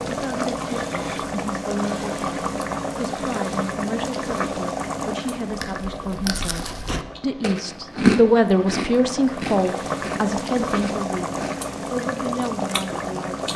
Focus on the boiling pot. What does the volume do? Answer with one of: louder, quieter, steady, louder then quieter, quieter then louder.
quieter then louder.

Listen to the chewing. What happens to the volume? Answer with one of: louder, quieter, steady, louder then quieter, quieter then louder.
louder then quieter.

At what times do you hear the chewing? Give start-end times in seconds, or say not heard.
5.5-11.6.